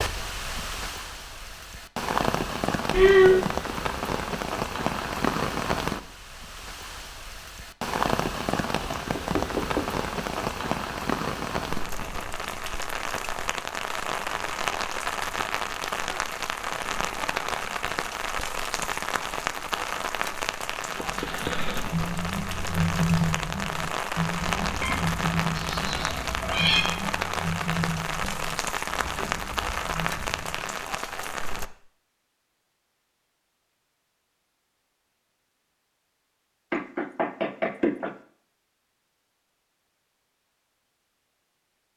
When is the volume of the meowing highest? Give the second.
3 s.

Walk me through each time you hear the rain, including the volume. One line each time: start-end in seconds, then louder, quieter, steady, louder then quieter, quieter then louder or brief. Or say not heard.
0.0-31.7 steady.